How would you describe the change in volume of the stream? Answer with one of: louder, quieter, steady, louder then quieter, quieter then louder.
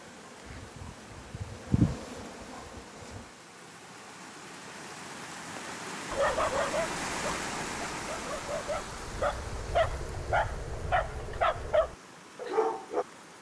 louder then quieter.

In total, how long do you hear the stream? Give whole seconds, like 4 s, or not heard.
13 s.